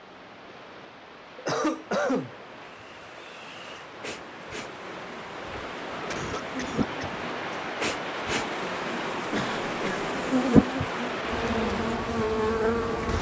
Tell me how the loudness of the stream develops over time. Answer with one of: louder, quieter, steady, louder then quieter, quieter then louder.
louder.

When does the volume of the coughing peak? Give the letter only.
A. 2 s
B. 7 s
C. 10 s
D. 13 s
A.